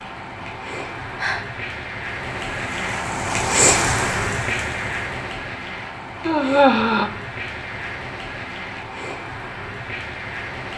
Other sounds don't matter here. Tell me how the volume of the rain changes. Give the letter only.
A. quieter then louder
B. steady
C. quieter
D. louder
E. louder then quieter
E.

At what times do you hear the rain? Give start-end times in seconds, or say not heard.
0.0-10.7.